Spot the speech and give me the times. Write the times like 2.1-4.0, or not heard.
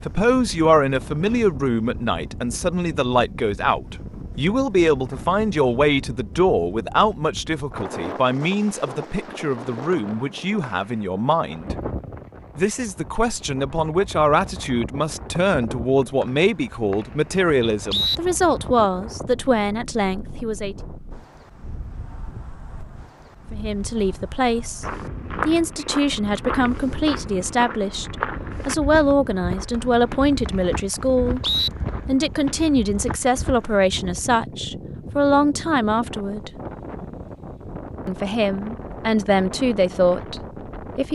0.0-11.8, 12.6-20.8, 23.5-24.9, 25.4-31.4, 32.0-36.5, 38.0-41.1.